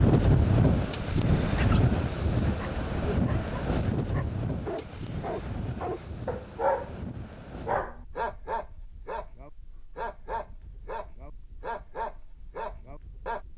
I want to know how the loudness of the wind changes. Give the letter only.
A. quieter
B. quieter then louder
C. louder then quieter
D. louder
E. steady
A.